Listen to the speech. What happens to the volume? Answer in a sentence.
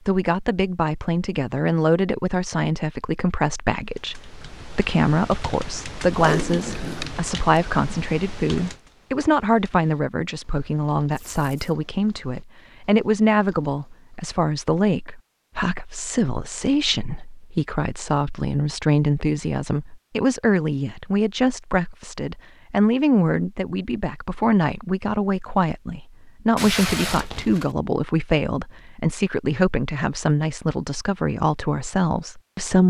The volume of the speech stays about the same.